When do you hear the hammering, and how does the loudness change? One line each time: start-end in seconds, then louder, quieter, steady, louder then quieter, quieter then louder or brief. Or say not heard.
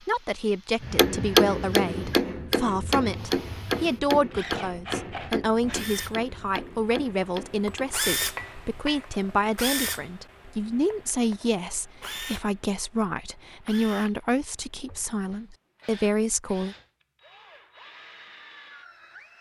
0.8-9.2 quieter.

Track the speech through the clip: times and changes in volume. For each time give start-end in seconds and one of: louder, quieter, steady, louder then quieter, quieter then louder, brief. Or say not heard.
0.1-16.8 steady.